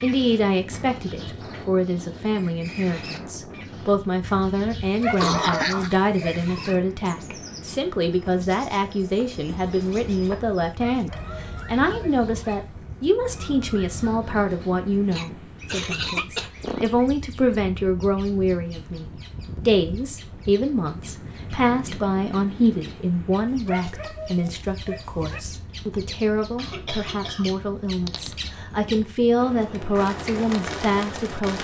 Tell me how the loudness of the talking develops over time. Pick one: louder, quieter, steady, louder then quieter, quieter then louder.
steady.